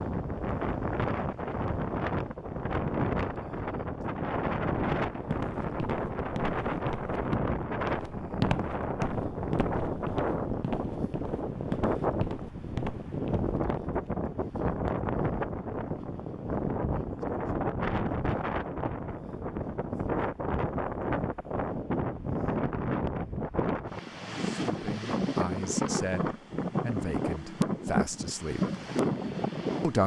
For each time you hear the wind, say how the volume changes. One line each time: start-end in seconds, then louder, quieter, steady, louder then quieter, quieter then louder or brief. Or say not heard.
0.0-30.0 steady.